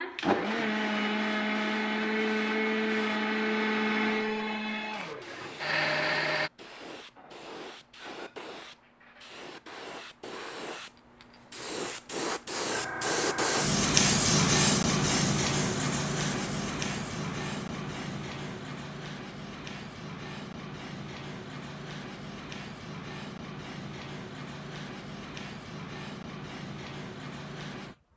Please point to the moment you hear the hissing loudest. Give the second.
14 s.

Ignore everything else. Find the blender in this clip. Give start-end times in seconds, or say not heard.
0.0-6.5.